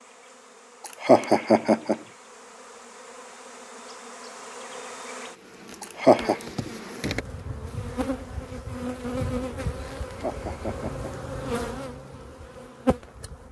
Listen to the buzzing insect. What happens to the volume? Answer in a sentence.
The volume of the buzzing insect goes up.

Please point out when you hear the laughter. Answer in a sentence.
You can hear the laughter from 0.8 to 1.9 s, from 5.8 to 6.3 s and from 10.0 to 11.1 s.